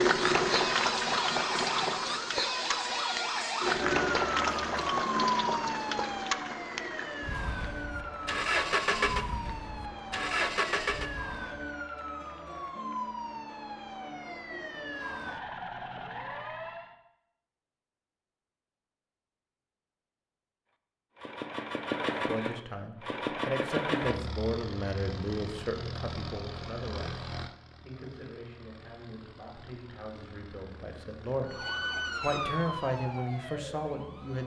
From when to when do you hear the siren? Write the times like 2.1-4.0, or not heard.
0.0-16.9, 31.4-34.4.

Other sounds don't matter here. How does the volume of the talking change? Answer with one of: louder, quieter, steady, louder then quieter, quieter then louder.
quieter then louder.